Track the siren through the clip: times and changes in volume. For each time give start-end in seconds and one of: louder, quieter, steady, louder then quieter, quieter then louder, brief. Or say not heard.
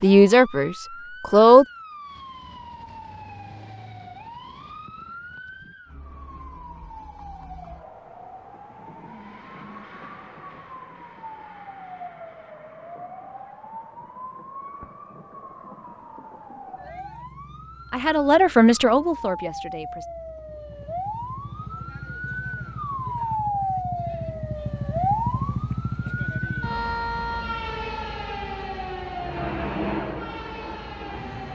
0.0-31.5 louder.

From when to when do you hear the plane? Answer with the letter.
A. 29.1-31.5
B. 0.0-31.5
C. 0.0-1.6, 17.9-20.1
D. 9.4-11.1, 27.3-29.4
A.